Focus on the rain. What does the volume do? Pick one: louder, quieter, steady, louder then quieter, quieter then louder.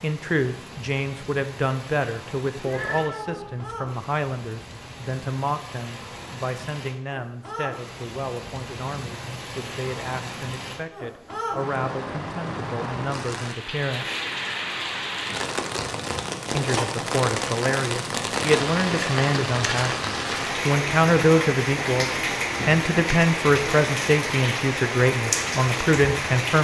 louder.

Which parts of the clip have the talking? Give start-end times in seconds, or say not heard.
0.0-14.2, 16.6-26.5.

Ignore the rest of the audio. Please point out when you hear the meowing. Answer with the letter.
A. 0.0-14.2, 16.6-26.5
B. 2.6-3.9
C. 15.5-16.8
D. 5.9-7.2
B.